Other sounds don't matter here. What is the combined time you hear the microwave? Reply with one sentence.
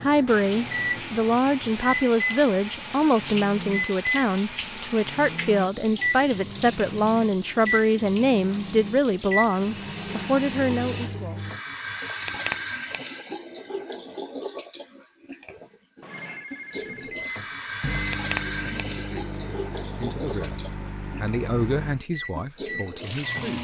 The microwave can be heard for 18 seconds in total.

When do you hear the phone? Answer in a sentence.
You can hear the phone from 16.0 to 17.1 s.